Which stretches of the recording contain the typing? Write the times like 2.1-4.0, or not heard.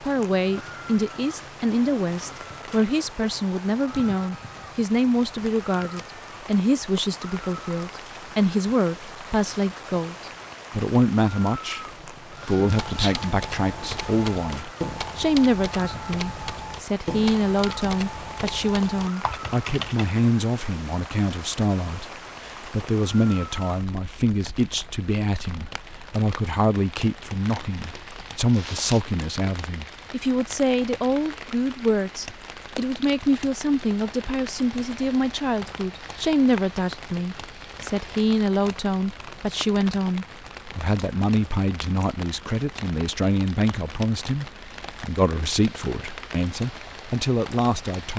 12.6-20.1.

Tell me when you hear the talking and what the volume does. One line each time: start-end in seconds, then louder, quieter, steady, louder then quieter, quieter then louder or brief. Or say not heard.
0.0-48.1 steady.